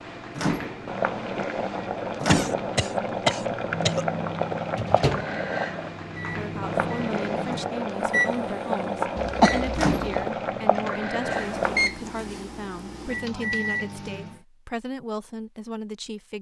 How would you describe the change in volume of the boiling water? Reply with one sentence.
The loudness of the boiling water stays about the same.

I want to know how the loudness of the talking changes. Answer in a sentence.
The loudness of the talking stays about the same.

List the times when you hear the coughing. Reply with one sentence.
You can hear the coughing from 2.2 to 4.0 s and from 9.2 to 10.2 s.